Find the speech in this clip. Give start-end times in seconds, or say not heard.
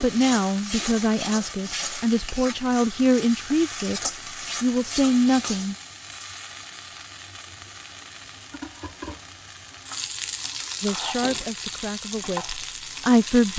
0.0-5.8, 10.8-13.5.